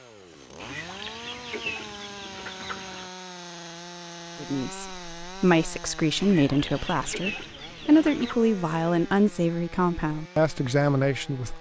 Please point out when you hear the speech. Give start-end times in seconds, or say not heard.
4.3-11.5.